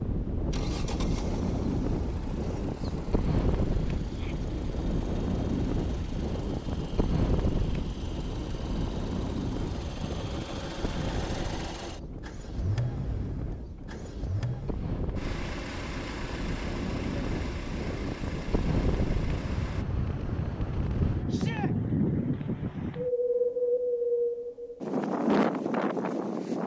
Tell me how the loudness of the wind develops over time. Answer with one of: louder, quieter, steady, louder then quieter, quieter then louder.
quieter then louder.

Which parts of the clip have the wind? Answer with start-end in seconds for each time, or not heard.
0.0-26.6.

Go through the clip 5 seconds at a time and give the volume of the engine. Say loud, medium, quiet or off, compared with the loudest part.
medium, medium, loud, loud, off, off.